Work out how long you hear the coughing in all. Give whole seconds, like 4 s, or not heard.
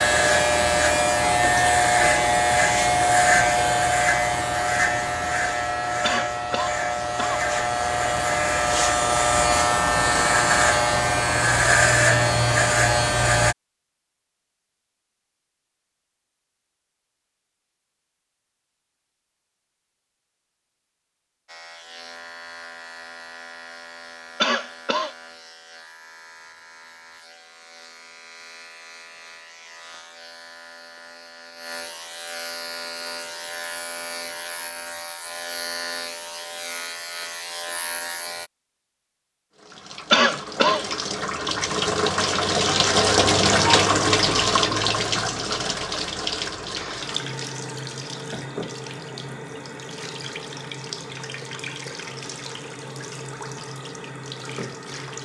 3 s.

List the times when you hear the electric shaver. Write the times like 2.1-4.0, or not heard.
0.0-13.6, 21.4-38.5.